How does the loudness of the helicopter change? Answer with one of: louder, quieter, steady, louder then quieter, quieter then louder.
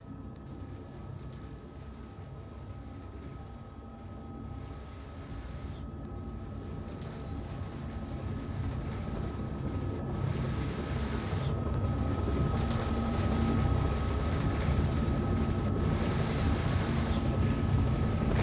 louder.